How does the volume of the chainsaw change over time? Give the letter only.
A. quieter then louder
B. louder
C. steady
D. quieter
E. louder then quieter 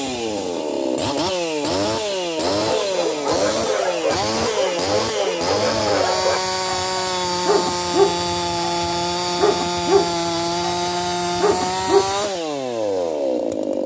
C.